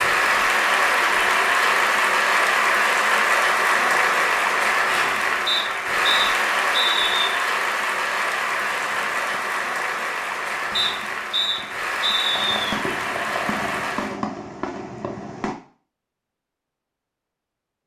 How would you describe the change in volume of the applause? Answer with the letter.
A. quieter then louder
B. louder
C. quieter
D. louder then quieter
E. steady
C.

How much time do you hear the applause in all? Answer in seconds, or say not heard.
14 s.